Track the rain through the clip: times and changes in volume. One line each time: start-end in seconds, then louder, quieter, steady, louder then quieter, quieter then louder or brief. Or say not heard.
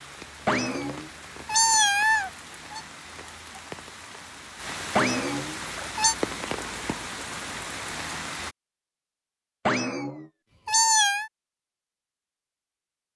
0.0-8.6 louder.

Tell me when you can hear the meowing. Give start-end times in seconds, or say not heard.
0.5-2.8, 5.0-6.2, 9.7-11.3.